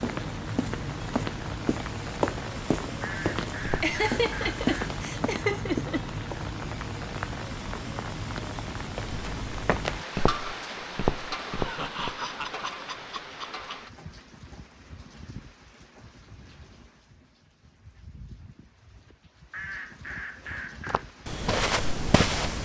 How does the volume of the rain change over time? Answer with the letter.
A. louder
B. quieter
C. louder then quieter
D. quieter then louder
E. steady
B.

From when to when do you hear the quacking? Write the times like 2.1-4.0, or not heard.
3.0-4.8, 19.5-21.1.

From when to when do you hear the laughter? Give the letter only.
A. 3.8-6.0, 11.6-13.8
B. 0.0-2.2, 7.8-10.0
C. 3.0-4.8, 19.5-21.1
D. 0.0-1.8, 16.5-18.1
A.